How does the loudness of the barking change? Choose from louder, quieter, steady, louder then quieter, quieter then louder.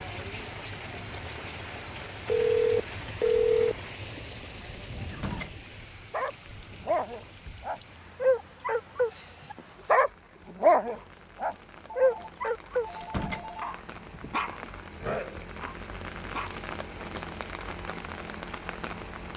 louder then quieter.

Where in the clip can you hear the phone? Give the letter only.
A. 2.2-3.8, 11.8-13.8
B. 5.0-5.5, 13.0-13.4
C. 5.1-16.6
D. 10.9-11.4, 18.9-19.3
A.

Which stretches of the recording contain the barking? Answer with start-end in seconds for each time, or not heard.
5.1-16.6.